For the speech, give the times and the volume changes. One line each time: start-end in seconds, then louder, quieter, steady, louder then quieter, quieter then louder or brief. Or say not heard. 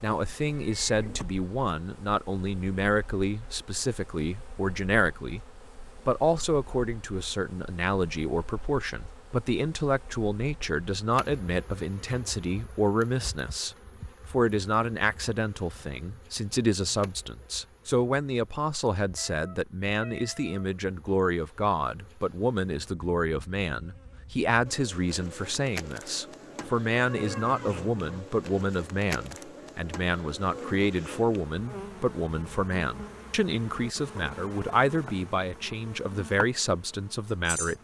0.0-5.4 steady
6.0-37.7 steady.